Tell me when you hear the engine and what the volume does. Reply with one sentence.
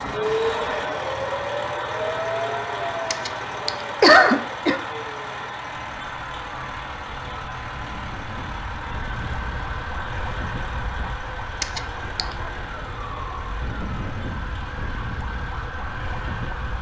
You can hear the engine from 0.0 to 16.7 s, getting quieter.